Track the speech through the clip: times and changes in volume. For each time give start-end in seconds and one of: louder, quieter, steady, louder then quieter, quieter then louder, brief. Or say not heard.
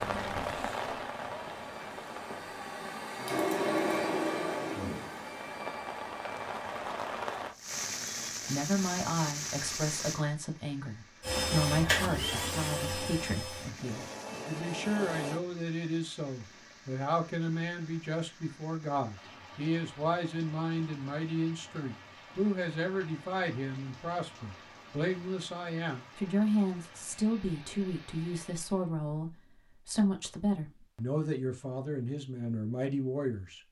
8.4-33.6 steady.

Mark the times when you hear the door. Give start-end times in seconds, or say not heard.
not heard.